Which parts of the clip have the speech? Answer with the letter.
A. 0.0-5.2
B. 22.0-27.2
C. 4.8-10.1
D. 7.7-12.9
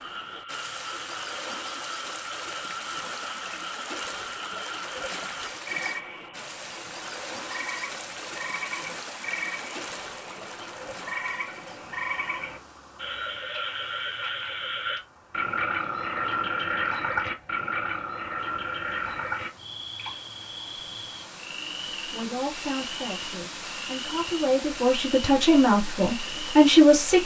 B.